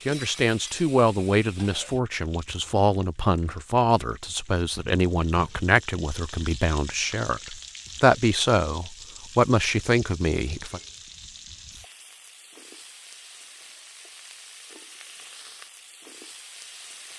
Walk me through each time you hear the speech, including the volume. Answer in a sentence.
You can hear the speech from 0.1 to 10.8 s, at a steady volume.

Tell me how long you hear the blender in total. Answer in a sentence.
You can't hear the blender here.